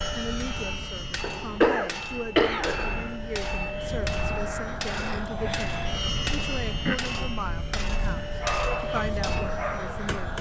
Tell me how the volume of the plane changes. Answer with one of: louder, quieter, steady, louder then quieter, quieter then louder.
louder.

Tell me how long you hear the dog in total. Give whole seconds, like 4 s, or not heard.
2 s.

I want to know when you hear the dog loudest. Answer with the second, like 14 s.
9 s.